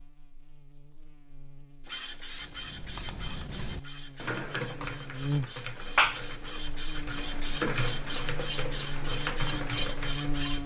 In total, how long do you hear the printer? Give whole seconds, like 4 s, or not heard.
9 s.